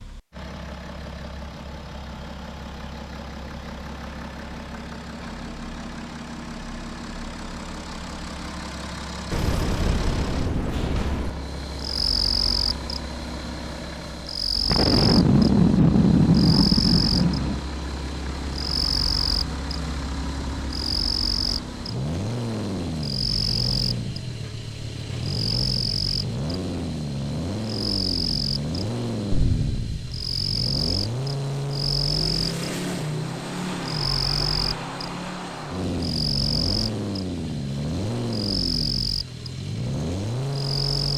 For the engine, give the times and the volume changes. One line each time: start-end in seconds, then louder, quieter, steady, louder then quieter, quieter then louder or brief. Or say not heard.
0.0-41.1 louder.